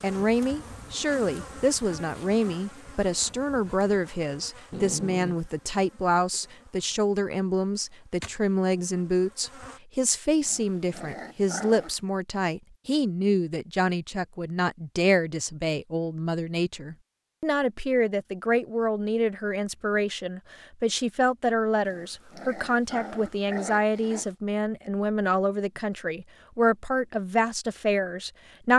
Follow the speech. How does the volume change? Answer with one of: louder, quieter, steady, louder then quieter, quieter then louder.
steady.